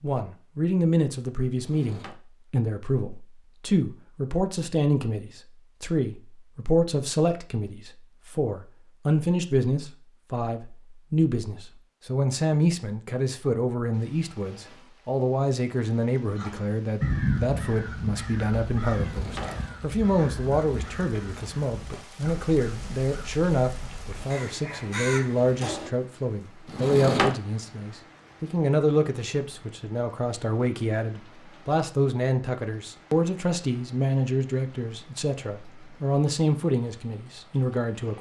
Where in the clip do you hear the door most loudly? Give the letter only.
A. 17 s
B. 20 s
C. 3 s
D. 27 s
D.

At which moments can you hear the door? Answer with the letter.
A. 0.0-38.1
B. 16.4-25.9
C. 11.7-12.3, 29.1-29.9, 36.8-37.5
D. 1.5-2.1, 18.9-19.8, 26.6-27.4
D.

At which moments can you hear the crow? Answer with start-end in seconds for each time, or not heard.
16.4-25.9.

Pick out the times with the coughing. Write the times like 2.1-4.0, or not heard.
not heard.